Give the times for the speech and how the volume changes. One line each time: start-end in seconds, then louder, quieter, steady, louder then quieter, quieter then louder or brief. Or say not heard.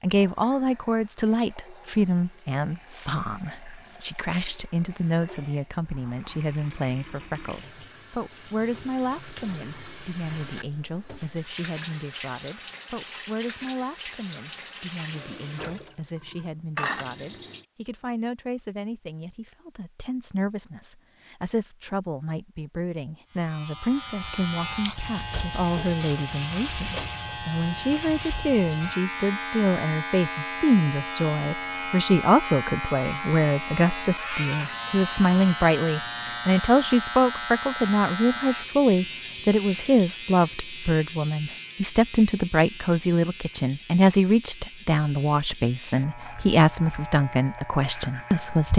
0.0-48.7 quieter then louder.